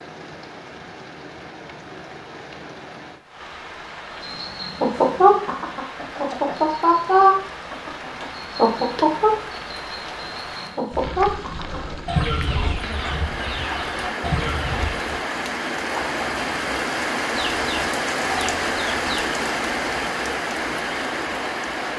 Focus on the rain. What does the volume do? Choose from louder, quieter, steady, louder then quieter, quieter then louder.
louder.